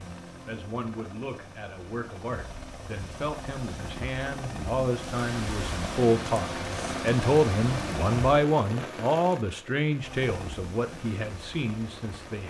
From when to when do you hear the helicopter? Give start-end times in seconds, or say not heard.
0.0-8.4, 10.0-12.4.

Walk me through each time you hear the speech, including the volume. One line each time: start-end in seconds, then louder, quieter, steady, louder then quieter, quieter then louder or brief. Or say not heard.
0.0-12.4 louder then quieter.